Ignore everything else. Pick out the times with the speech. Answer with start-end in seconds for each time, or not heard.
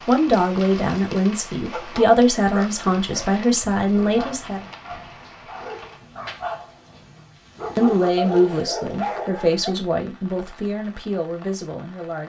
0.1-4.7, 7.8-12.2.